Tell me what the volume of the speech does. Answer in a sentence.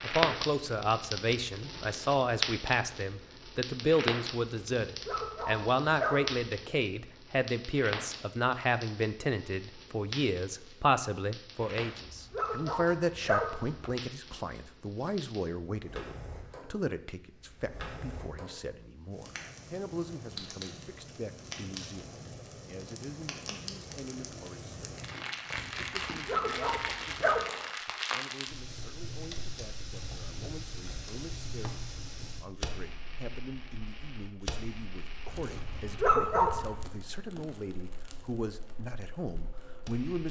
The volume of the speech goes down, then up.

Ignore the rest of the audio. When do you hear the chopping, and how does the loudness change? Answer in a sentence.
The chopping can't be heard in this clip.